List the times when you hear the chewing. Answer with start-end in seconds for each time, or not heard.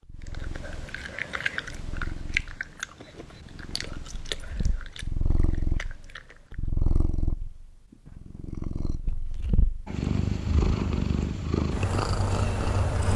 0.2-6.6.